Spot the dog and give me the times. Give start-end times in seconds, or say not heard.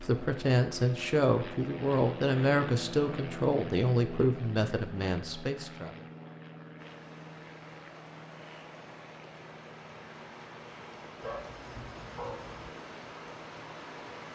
11.2-12.7.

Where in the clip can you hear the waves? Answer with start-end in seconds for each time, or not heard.
6.8-14.3.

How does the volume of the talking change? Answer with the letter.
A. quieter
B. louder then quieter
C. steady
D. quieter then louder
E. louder
A.